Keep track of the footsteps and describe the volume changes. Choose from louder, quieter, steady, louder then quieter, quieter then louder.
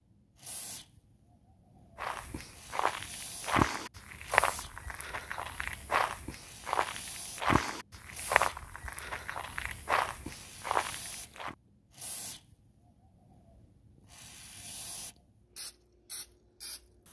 steady.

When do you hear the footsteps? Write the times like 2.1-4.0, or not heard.
1.9-11.6.